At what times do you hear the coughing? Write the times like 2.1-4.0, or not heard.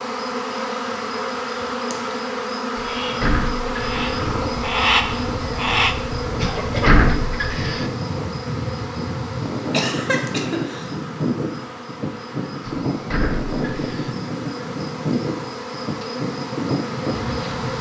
6.3-7.2, 9.7-10.9.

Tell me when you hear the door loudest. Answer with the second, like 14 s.
7 s.